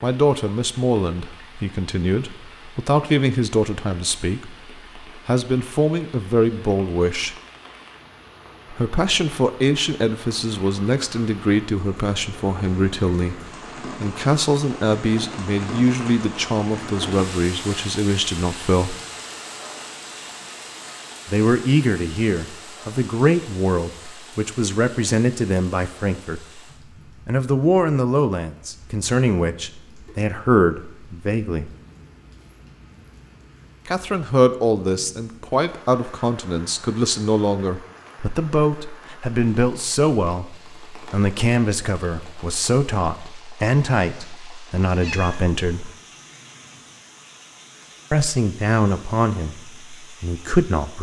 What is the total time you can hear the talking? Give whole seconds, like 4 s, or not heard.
42 s.